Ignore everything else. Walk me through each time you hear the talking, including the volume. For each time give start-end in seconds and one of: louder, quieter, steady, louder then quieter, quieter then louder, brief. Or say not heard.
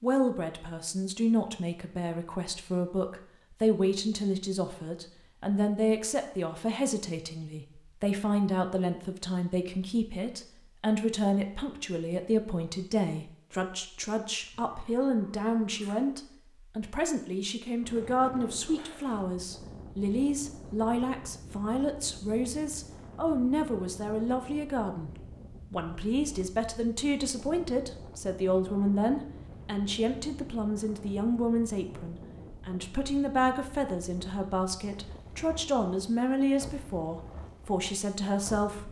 0.0-38.8 steady.